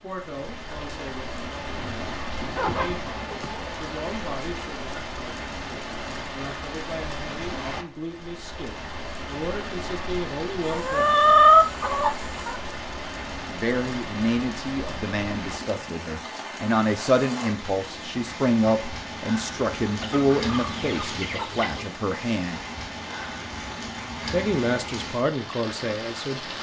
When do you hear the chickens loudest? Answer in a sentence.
The loudest moment of the chickens is at 11 seconds.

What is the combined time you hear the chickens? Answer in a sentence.
You can hear the chickens for 6 seconds altogether.